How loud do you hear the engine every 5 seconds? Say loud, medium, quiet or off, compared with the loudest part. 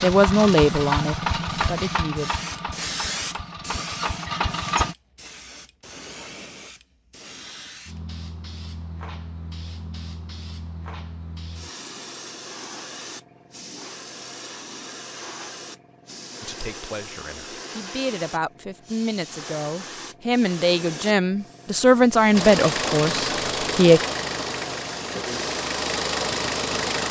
loud, off, off, off, loud, loud.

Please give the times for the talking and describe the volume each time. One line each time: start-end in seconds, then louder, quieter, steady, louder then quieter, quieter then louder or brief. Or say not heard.
0.0-2.3 brief
16.4-24.0 louder.